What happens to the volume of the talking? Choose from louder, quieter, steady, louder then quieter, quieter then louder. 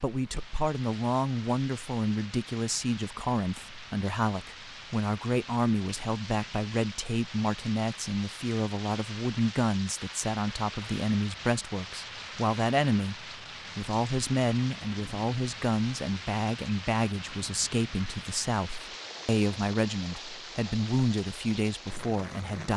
steady.